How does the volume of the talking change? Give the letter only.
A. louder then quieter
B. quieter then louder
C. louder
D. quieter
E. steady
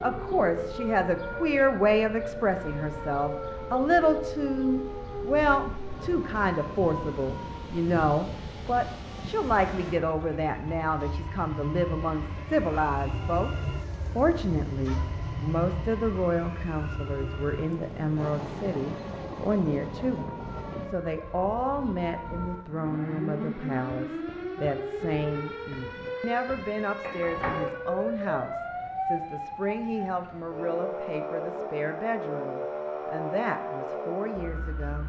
D.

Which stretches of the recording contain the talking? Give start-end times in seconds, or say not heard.
0.0-13.5, 14.2-35.0.